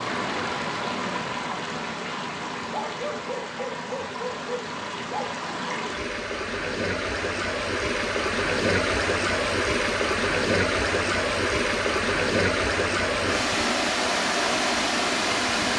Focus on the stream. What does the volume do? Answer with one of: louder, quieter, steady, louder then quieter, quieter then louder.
louder.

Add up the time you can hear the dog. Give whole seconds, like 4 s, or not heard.
3 s.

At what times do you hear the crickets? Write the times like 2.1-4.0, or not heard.
not heard.